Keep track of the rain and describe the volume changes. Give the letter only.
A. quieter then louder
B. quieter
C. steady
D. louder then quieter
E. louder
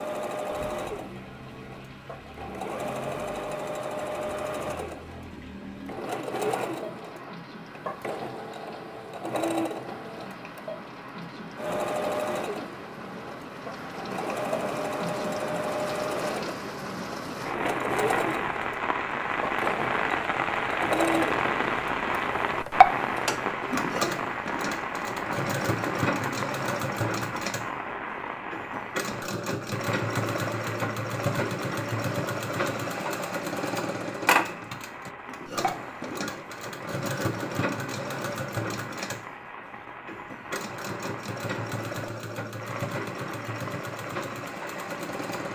D.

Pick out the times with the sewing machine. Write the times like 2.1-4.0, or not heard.
0.0-45.5.